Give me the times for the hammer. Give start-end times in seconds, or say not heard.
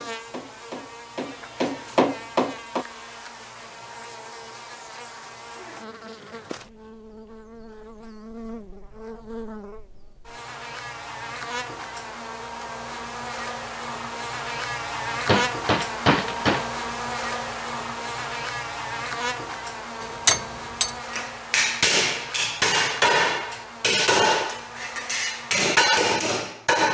0.0-2.9, 15.2-16.7, 20.0-26.8.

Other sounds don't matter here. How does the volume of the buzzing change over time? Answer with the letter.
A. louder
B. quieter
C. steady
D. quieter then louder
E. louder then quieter
E.